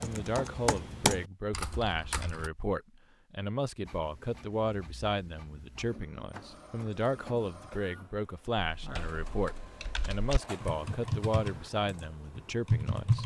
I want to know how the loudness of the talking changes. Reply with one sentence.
The loudness of the talking stays about the same.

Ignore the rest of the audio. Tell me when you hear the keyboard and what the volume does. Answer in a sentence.
You can hear the keyboard briefly from 0.0 to 2.5 s; and from 8.8 to 13.2 s, getting louder.